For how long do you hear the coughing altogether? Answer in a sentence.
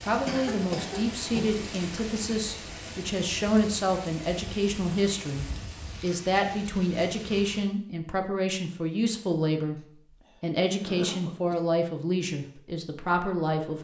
You can hear the coughing for 3 seconds altogether.